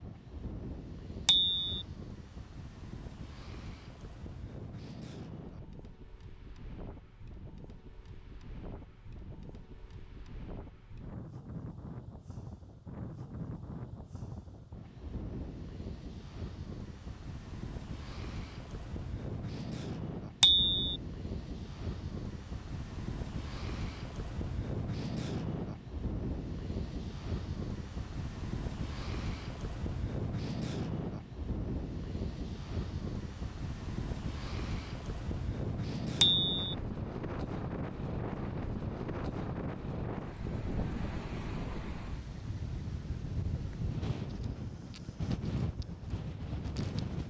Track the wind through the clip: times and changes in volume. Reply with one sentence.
You can hear the wind from 0.0 to 47.2 s, getting louder.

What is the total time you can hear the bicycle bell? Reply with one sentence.
The bicycle bell can be heard for 2 seconds in total.